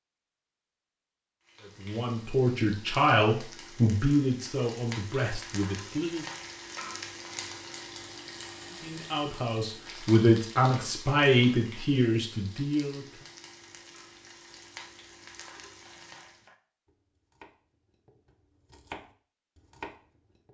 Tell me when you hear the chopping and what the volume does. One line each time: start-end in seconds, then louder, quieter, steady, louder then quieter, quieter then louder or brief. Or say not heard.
15.8-20.5 quieter then louder.